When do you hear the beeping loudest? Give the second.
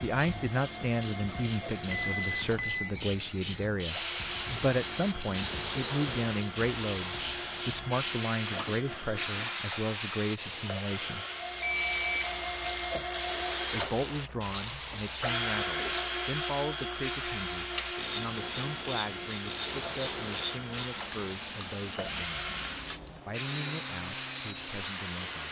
23 s.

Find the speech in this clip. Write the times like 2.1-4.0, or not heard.
0.0-11.2, 13.7-22.5, 23.2-25.4.